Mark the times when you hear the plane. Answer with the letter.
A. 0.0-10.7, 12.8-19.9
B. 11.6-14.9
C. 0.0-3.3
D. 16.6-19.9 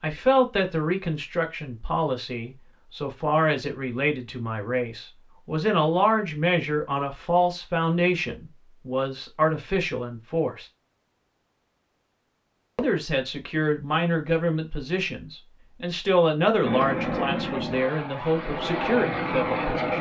D.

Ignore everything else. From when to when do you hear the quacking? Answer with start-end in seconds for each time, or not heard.
not heard.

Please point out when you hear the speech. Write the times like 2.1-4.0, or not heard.
0.0-10.7, 12.8-19.9.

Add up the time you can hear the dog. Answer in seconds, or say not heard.
not heard.